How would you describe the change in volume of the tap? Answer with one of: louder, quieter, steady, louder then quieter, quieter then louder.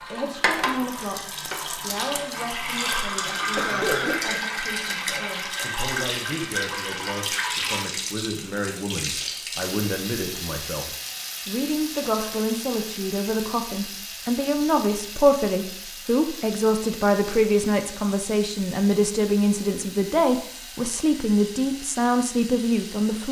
quieter.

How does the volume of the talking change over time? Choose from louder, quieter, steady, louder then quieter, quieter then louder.
louder.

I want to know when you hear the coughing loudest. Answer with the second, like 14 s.
4 s.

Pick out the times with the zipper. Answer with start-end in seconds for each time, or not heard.
not heard.